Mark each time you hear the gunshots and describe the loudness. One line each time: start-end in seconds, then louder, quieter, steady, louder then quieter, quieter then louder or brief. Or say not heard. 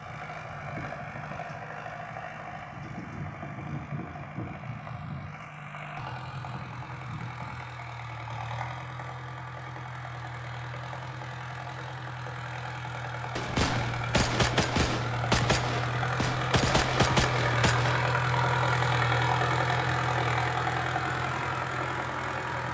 13.3-18.1 steady.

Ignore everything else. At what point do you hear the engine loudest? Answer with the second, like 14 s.
19 s.